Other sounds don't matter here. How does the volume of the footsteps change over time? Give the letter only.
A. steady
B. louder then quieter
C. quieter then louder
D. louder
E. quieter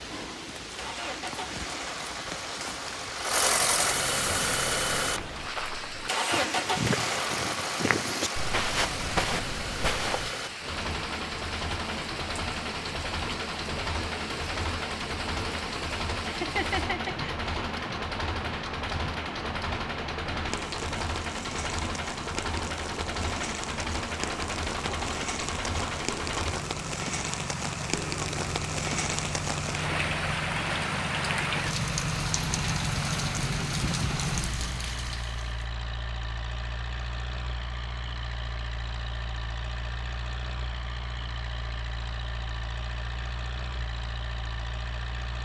D.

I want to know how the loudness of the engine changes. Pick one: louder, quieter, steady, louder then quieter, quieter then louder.
quieter.